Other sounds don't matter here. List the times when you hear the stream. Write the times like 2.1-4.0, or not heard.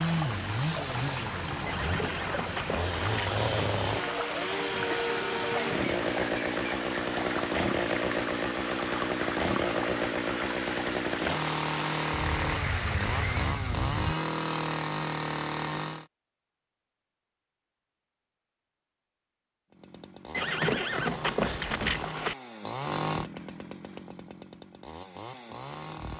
0.0-13.6.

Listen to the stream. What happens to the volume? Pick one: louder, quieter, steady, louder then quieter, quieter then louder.
steady.